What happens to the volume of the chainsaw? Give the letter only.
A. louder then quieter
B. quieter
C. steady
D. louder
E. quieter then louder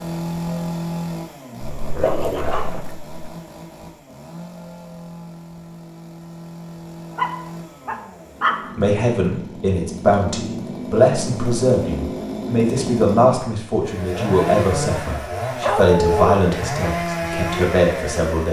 E.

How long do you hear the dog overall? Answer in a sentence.
The dog can be heard for 4 seconds in total.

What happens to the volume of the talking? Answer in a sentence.
The loudness of the talking stays about the same.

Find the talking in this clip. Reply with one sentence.
The talking can be heard from 8.8 to 18.4 s.